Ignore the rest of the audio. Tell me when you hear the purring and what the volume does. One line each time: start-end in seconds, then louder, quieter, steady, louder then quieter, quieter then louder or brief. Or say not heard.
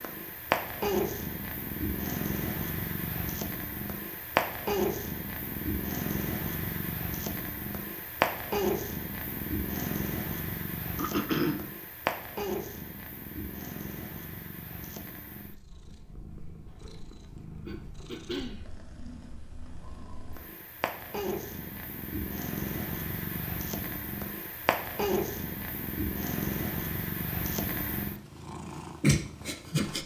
0.0-30.0 quieter then louder.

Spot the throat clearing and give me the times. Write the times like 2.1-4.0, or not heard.
10.9-11.7, 17.6-18.6.